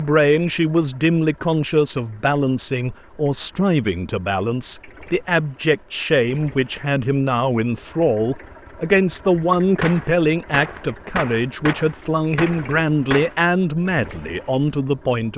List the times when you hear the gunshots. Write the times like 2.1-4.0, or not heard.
9.8-13.3.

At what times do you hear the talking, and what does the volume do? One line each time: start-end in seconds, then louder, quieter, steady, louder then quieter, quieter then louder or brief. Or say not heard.
0.0-15.3 steady.